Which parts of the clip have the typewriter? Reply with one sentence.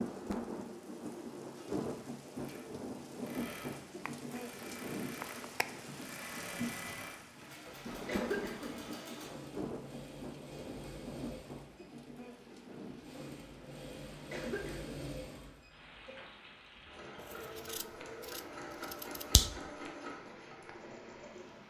The typewriter can't be heard in this clip.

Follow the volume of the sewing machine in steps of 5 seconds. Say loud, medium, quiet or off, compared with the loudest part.
medium, loud, loud, loud, loud.